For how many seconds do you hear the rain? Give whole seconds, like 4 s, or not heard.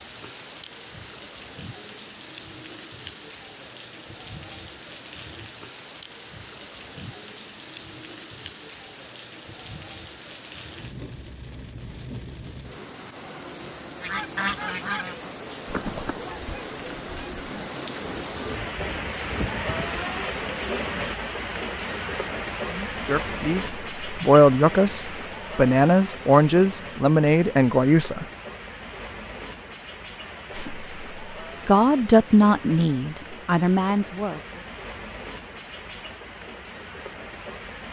38 s.